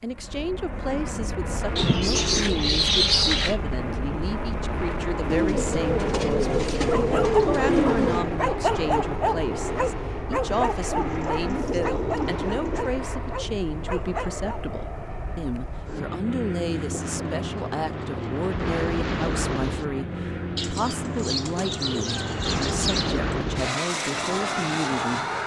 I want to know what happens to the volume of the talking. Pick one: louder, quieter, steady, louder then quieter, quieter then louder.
steady.